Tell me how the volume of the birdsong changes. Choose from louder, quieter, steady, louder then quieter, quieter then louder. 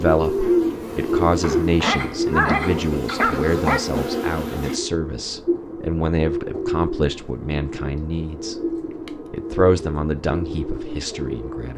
quieter.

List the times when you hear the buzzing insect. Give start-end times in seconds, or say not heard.
0.0-4.8.